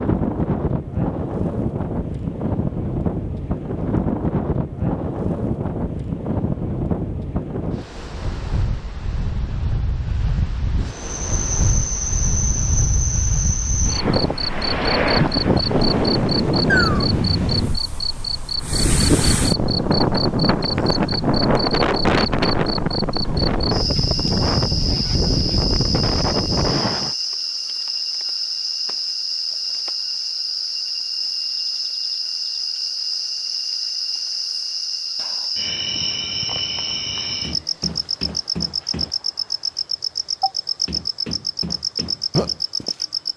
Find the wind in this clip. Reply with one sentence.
You can hear the wind from 0.0 to 27.1 s.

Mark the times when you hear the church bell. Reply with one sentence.
You can't hear the church bell here.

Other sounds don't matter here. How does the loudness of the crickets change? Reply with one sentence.
The loudness of the crickets stays about the same.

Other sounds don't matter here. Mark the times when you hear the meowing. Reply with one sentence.
You can hear the meowing from 16.6 to 17.8 s.